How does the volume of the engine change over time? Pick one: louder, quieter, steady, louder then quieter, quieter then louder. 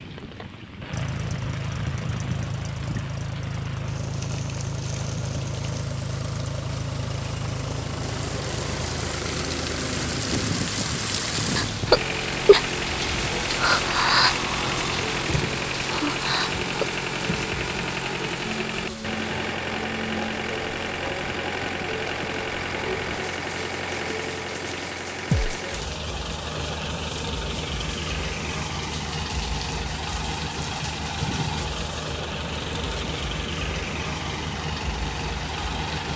steady.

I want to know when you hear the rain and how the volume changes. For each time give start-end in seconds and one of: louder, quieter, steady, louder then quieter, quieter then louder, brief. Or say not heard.
0.0-36.1 louder then quieter.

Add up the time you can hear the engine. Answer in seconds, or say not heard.
36 s.